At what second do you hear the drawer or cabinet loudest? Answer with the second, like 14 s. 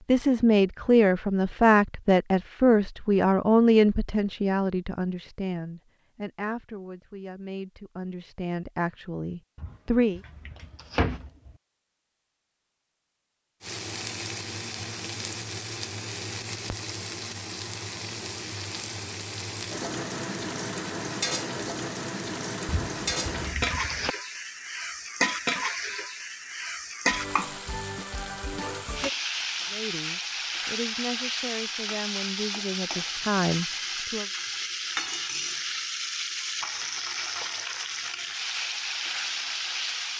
11 s.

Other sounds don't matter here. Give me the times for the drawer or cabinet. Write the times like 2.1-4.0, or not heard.
9.6-11.6, 22.6-24.1.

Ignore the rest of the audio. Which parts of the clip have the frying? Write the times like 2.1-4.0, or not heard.
13.6-40.1.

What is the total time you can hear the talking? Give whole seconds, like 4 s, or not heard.
15 s.